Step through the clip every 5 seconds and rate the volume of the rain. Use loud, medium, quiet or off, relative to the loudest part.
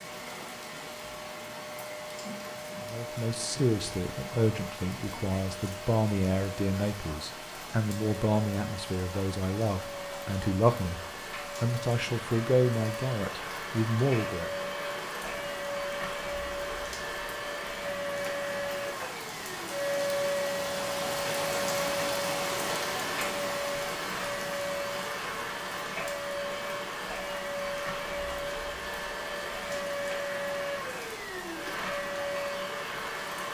medium, medium, medium, medium, loud, medium, medium.